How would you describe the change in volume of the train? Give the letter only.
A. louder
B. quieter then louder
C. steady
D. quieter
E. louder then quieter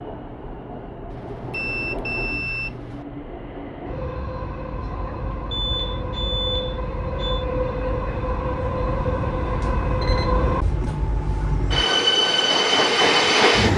A.